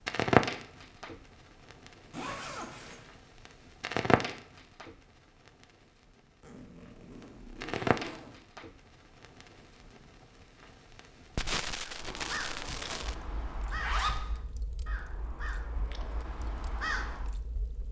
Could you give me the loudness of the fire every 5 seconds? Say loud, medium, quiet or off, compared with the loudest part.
loud, medium, medium, quiet.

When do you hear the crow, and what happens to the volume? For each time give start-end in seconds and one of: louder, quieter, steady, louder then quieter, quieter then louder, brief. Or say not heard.
11.8-17.4 quieter then louder.